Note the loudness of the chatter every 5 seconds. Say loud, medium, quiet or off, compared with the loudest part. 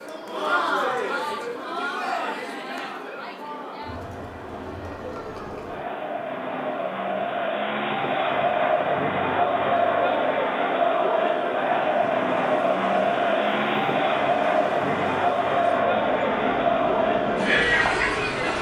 medium, loud, loud, loud.